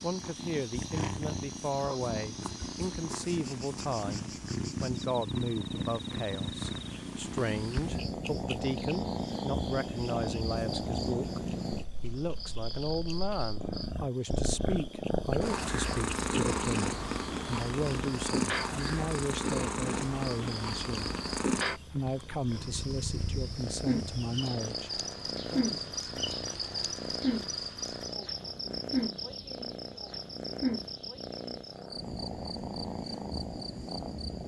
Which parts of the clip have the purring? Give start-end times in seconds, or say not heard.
0.0-34.4.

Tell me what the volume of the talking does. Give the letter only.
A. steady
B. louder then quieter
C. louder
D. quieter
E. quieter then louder
A.